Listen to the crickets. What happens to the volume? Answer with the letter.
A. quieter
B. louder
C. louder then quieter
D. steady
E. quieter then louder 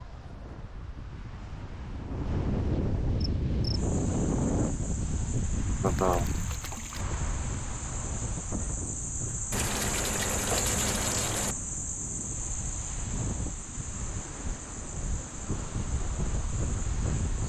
C.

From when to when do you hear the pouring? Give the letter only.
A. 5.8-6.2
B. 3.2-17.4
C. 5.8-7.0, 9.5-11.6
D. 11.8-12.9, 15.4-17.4
C.